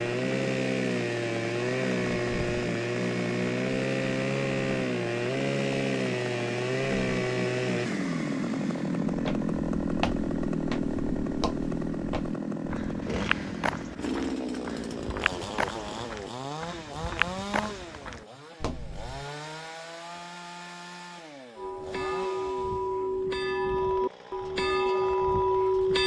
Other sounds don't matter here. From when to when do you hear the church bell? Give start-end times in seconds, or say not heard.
21.6-26.0.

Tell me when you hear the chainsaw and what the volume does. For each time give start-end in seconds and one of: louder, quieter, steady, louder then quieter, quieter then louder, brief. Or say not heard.
0.0-26.0 quieter.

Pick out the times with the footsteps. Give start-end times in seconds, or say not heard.
9.1-19.2.